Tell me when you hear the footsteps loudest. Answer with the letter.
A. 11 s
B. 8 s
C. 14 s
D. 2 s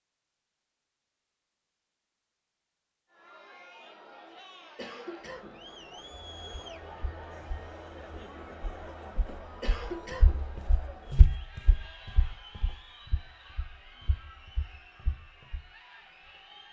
A.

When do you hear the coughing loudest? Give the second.
10 s.